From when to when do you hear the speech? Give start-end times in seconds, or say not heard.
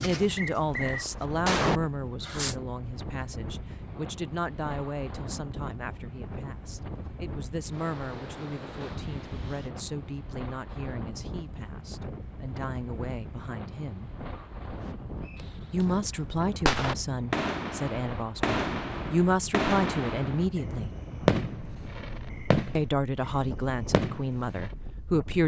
0.0-14.1, 15.7-20.9, 22.8-25.4.